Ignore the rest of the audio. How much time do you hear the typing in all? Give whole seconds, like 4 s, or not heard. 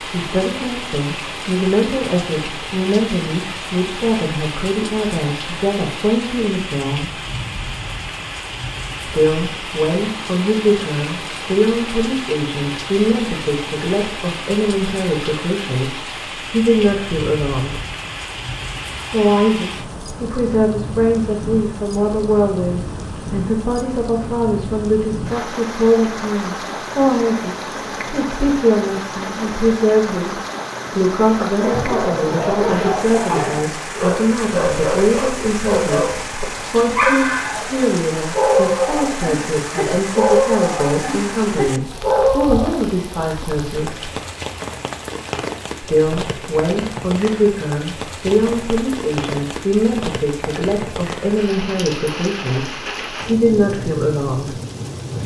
not heard.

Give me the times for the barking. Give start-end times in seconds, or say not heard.
31.4-42.8.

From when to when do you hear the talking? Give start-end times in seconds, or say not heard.
0.0-7.1, 9.1-17.8, 19.1-44.1, 45.8-54.5.